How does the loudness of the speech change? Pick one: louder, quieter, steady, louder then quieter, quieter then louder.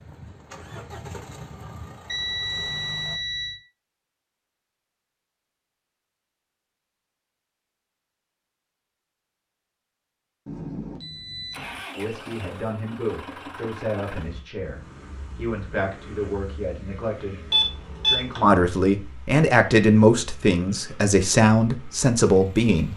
louder.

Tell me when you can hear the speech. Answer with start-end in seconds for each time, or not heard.
11.9-22.9.